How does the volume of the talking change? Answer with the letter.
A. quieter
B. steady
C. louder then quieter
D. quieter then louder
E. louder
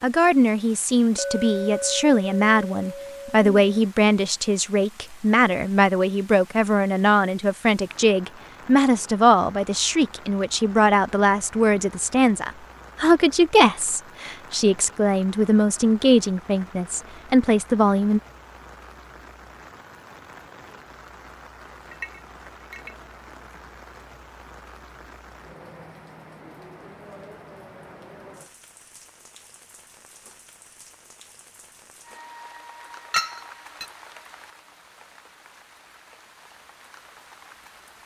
B.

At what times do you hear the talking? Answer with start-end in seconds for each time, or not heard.
0.0-18.2.